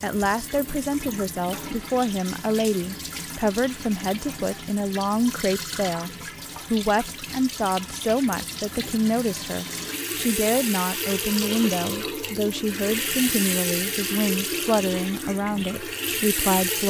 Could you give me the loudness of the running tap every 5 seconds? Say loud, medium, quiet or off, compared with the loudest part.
medium, medium, loud, loud.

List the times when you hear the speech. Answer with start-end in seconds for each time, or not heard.
0.0-6.1, 6.7-16.8.